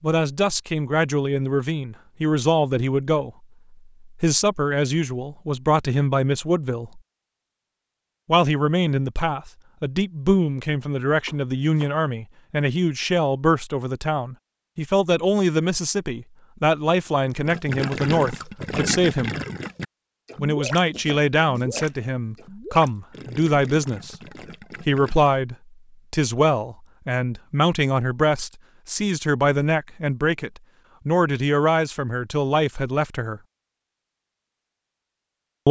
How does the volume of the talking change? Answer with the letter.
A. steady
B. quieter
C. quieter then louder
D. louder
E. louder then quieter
A.